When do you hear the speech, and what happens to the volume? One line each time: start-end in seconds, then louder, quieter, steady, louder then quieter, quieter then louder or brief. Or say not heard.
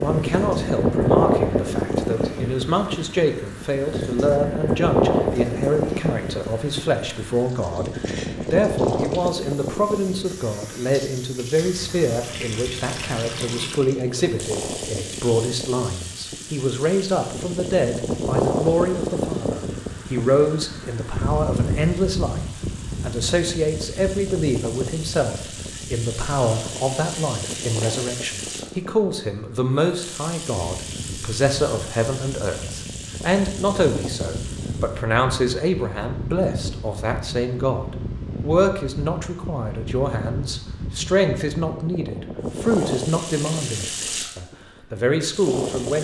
0.0-22.4 steady
23.0-45.9 steady.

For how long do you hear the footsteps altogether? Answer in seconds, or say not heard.
not heard.